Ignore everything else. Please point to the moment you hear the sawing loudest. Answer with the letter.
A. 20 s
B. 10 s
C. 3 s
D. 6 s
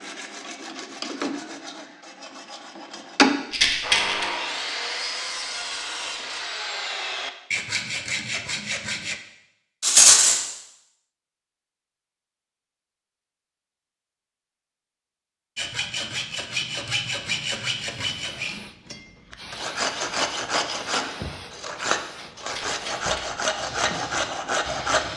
C.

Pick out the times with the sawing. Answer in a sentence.
The sawing can be heard from 0.0 to 9.2 s and from 15.6 to 25.1 s.